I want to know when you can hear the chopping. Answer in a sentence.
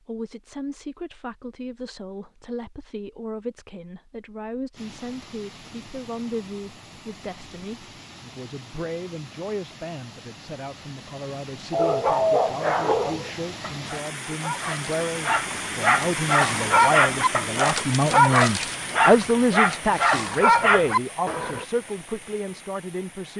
You can't hear the chopping here.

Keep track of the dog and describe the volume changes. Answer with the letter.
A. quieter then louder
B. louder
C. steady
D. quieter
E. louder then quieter
A.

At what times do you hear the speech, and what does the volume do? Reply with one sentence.
You can hear the speech from 0.1 to 23.3 s, getting louder.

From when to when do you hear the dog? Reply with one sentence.
The dog can be heard from 11.7 to 21.6 s.